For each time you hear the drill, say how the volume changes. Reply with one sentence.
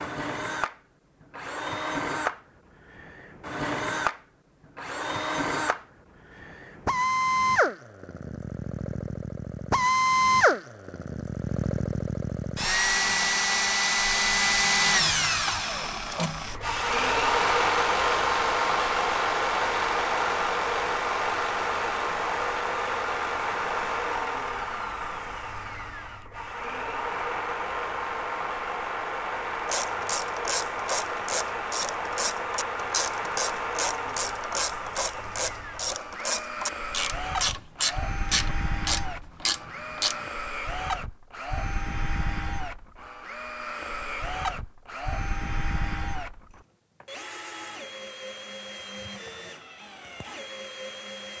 You can hear the drill from 0.0 to 51.3 s, getting quieter.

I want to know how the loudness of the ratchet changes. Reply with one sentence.
The volume of the ratchet stays about the same.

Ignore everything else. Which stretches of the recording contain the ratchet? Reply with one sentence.
The ratchet can be heard from 29.6 to 40.3 s.